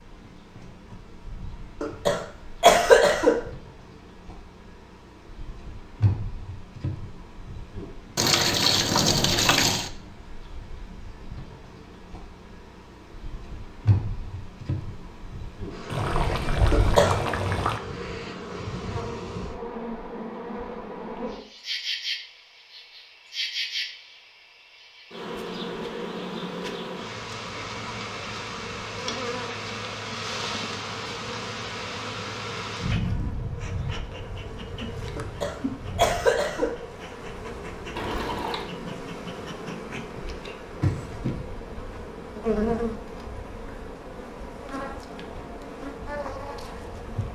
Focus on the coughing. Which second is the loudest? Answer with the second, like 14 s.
3 s.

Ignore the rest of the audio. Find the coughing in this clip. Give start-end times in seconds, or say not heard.
1.8-3.4, 16.7-17.1, 35.1-36.8.